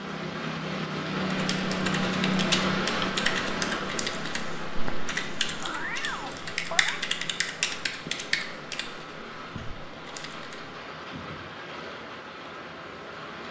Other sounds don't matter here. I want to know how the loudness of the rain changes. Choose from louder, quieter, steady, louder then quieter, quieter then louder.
quieter.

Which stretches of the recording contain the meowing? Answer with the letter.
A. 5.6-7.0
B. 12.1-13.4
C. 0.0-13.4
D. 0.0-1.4
A.